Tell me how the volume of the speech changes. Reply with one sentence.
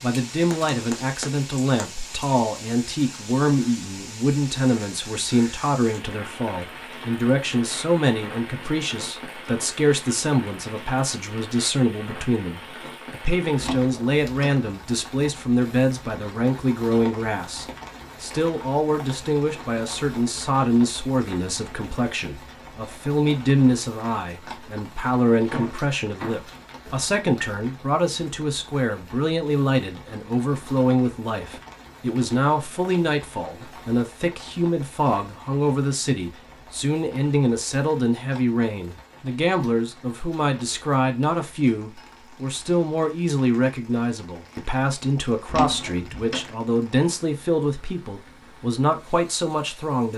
The volume of the speech stays about the same.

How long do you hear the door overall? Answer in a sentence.
You can hear the door for 4 seconds altogether.